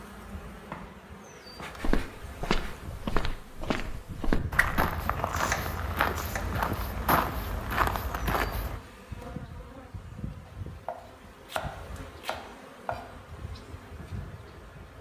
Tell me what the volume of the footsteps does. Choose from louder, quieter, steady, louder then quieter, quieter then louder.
steady.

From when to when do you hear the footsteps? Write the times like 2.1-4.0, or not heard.
1.8-8.8.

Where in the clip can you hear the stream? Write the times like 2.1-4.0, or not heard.
not heard.